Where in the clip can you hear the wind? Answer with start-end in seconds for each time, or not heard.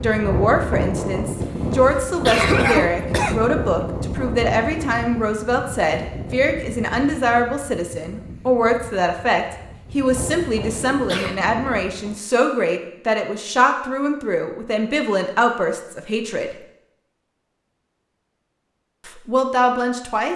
0.0-12.2.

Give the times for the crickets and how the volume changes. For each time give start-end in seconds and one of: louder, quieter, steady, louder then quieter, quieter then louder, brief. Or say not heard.
not heard.